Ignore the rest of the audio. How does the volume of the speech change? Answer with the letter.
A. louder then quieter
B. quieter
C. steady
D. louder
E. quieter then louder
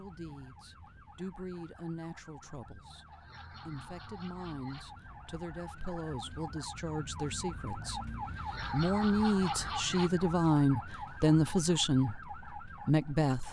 D.